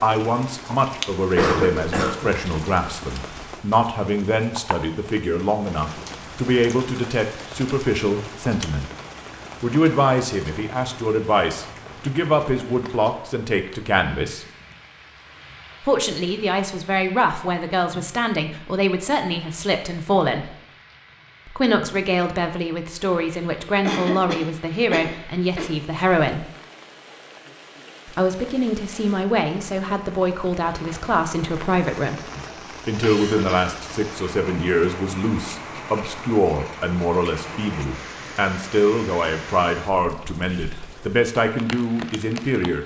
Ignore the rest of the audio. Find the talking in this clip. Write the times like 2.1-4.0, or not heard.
0.0-8.8, 9.6-14.4, 15.8-20.6, 21.4-26.4, 28.1-42.8.